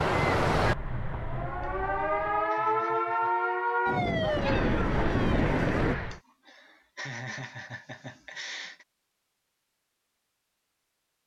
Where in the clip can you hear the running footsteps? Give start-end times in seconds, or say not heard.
not heard.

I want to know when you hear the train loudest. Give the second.
5 s.